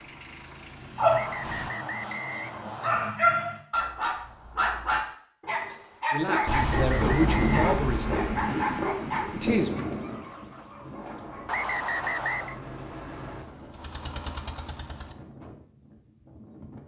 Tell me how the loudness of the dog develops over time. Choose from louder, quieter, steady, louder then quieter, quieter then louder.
louder then quieter.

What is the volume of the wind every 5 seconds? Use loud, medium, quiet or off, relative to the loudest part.
off, loud, quiet, quiet.